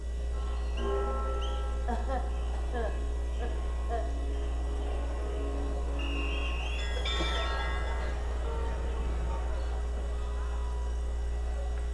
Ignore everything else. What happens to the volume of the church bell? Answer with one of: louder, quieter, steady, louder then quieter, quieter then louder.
quieter then louder.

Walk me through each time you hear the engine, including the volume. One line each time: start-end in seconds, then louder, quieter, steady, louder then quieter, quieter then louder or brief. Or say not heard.
0.0-11.8 steady.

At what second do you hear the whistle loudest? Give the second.
6 s.